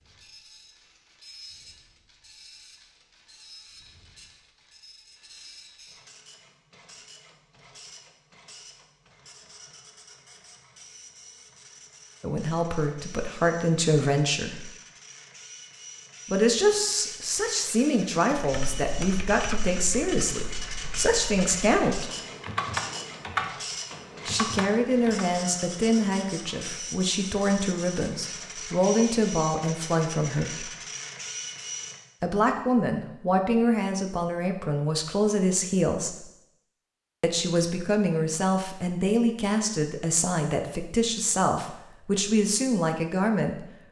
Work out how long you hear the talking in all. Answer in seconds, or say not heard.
25 s.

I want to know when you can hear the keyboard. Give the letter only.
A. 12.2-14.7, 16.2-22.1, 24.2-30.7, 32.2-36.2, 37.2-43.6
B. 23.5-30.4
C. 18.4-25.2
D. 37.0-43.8
C.